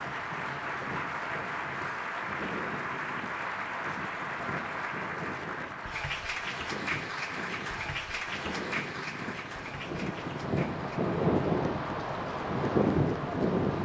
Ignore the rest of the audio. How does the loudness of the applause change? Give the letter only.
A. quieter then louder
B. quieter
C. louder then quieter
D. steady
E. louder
B.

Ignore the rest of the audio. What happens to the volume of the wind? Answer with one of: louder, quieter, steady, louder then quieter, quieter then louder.
louder.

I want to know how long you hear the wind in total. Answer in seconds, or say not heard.
14 s.